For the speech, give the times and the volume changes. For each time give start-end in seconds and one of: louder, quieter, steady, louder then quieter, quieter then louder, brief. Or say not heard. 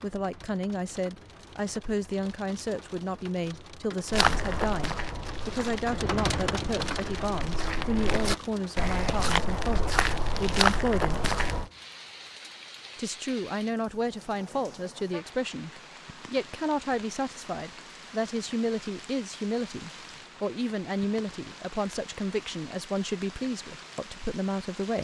0.0-11.3 steady
12.9-24.9 steady.